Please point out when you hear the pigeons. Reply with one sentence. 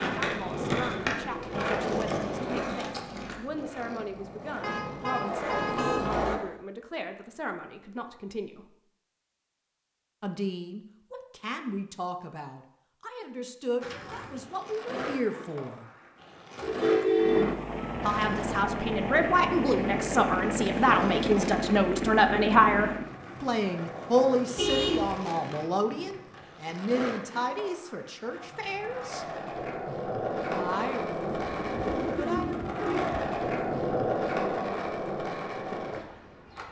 The pigeons can be heard from 31.4 to 34.2 s.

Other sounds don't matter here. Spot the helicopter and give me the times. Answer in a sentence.
You can hear the helicopter from 0.0 to 2.8 s and from 17.1 to 23.1 s.